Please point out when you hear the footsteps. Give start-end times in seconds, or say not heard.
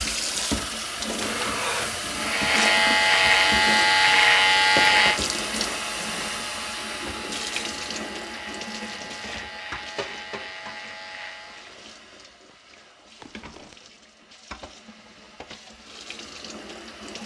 not heard.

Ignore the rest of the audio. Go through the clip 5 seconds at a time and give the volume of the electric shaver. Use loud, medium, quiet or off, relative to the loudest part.
loud, quiet, quiet, off.